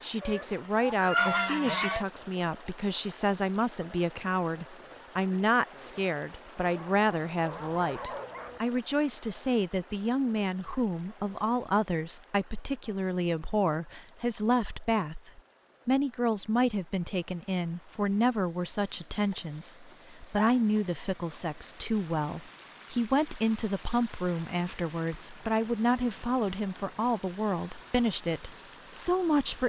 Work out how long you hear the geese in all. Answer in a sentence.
You can hear the geese for 2 seconds altogether.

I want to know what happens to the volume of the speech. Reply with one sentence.
The loudness of the speech stays about the same.